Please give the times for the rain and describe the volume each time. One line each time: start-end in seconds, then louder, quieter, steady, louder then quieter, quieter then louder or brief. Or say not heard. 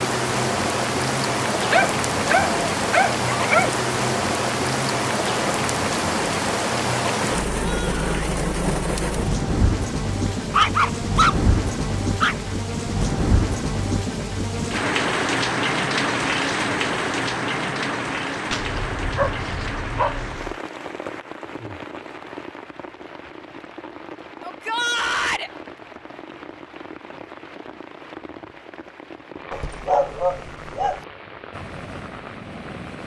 0.0-33.0 quieter.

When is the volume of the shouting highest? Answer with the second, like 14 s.
25 s.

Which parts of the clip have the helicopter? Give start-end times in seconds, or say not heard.
31.5-33.0.